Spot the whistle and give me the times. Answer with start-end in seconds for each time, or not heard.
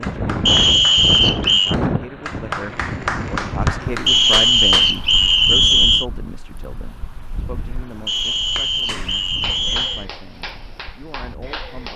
0.5-1.8, 4.0-6.0, 8.1-10.1.